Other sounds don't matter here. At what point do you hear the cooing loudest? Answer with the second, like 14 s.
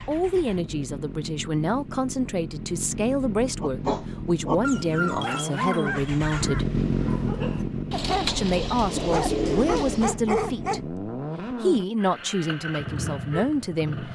9 s.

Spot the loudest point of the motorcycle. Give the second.
7 s.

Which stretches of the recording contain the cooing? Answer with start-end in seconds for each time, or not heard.
7.9-10.2.